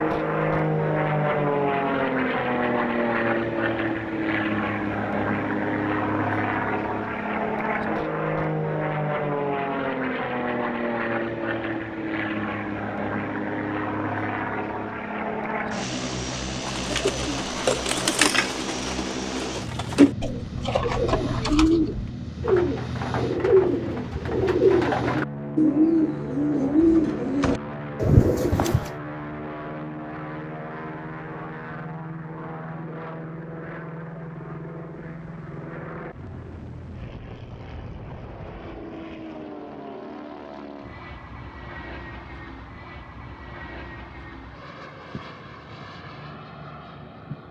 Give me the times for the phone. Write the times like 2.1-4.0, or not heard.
not heard.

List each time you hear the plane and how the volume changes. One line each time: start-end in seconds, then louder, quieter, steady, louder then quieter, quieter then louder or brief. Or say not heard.
0.0-47.4 quieter.